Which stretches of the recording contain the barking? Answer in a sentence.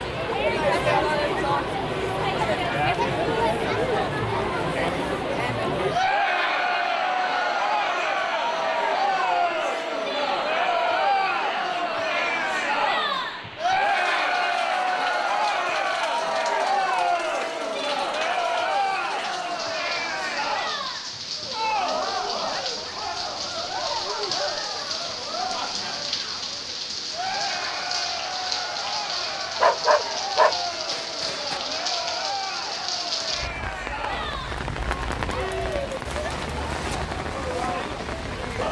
You can hear the barking from 29.6 to 31.6 s.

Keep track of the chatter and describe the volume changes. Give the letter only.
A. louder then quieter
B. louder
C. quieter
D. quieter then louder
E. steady
C.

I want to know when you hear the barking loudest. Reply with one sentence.
The volume of the barking peaks at 30 seconds.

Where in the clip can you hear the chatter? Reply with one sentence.
The chatter can be heard from 0.0 to 38.6 s.